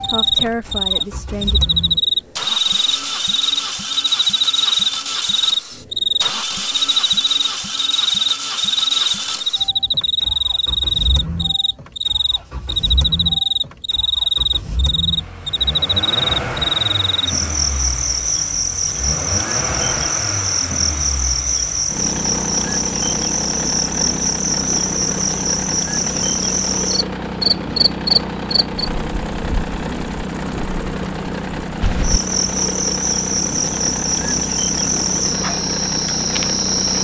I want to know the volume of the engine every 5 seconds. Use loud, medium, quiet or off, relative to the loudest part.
loud, loud, medium, loud, loud, loud, loud, loud.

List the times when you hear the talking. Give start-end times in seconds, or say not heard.
0.0-1.6.